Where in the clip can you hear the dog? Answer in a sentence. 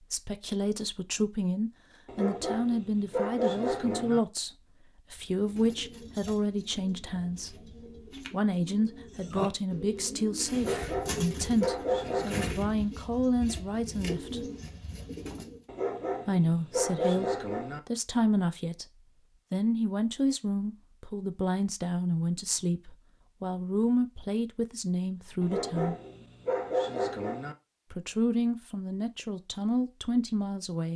You can hear the dog from 2.0 to 4.2 s, from 10.6 to 12.6 s, from 15.7 to 17.8 s and from 25.4 to 27.6 s.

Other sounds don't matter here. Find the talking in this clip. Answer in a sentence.
The talking can be heard from 0.0 to 14.5 s, from 16.2 to 18.9 s, from 19.5 to 25.9 s and from 27.9 to 30.9 s.